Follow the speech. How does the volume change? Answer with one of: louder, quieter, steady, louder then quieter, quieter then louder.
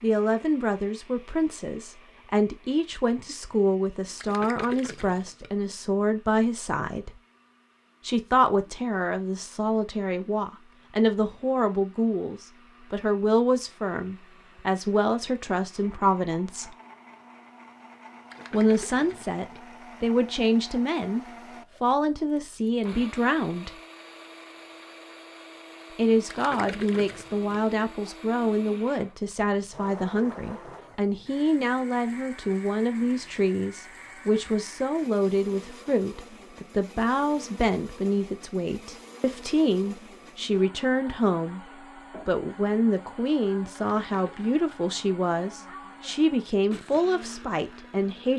steady.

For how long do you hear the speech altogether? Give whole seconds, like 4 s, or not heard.
43 s.